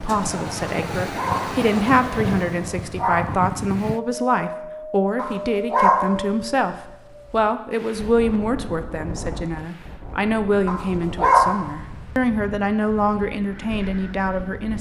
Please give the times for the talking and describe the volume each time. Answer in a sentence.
You can hear the talking from 0.0 to 14.7 s, at a steady volume.